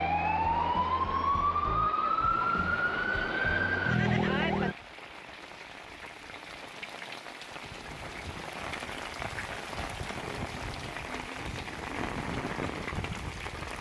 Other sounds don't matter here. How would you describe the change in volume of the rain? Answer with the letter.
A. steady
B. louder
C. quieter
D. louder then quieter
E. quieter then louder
B.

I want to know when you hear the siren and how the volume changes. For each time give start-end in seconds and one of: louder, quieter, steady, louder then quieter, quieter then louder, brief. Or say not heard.
0.0-4.8 steady.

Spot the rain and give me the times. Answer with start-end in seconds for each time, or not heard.
2.0-13.7.